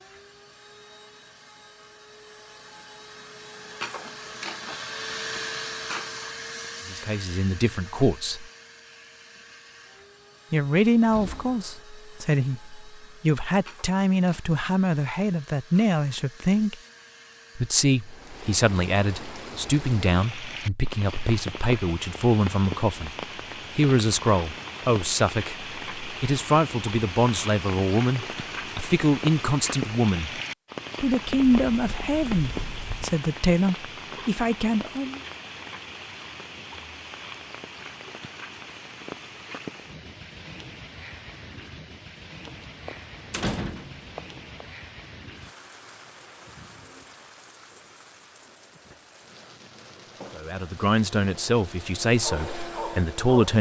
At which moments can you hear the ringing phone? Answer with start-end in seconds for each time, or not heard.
not heard.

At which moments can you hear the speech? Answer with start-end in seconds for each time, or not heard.
6.8-8.4, 10.5-16.8, 17.6-23.1, 23.8-30.4, 31.0-35.2, 50.4-53.5.